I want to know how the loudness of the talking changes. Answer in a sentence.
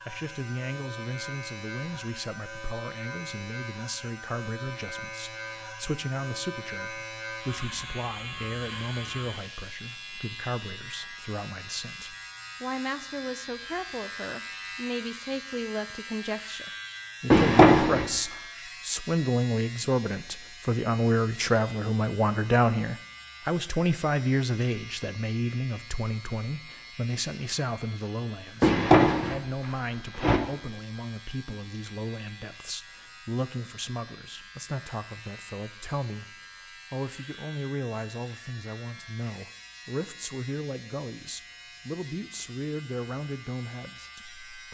The loudness of the talking goes up, then down.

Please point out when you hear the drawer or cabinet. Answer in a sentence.
The drawer or cabinet can be heard from 17.3 to 18.1 s and from 28.6 to 30.4 s.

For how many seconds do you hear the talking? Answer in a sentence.
The talking can be heard for 45 seconds in total.